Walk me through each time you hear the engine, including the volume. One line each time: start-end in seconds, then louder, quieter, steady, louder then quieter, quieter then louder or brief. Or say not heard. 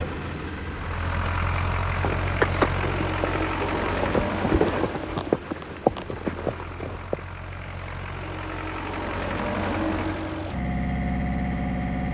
0.0-12.0 quieter then louder.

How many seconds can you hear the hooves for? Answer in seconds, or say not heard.
5 s.